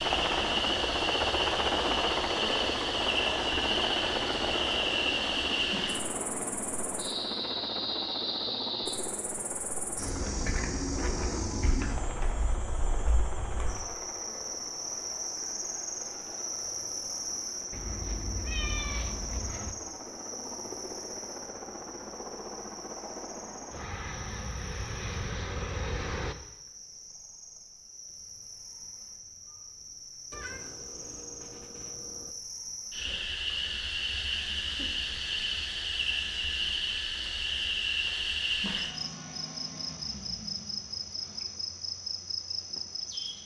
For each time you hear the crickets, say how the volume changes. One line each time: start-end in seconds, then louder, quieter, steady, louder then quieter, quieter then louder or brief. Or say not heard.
0.0-43.4 quieter then louder.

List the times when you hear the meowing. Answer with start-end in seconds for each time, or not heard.
17.7-19.8, 30.3-32.4.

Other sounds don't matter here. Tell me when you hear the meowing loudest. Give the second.
19 s.